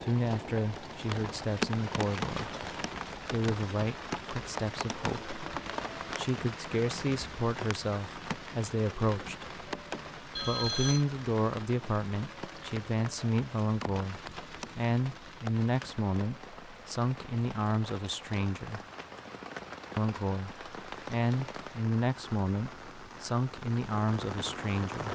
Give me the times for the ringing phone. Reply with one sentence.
You can hear the ringing phone from 10.3 to 11.1 s.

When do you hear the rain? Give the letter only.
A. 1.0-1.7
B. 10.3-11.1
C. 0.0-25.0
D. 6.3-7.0
C.